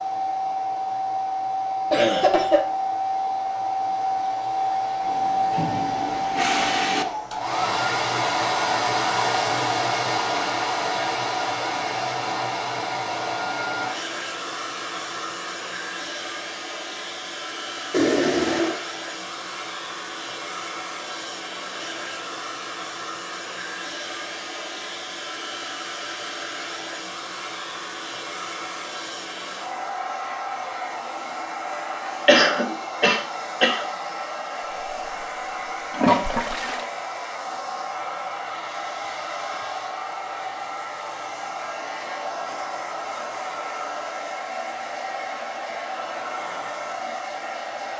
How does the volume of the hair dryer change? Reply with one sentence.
The loudness of the hair dryer goes down.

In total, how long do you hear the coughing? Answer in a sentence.
You can hear the coughing for 2 seconds altogether.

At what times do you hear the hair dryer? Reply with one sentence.
You can hear the hair dryer from 0.0 to 47.9 s.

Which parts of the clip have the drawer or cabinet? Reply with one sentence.
The drawer or cabinet can't be heard in this clip.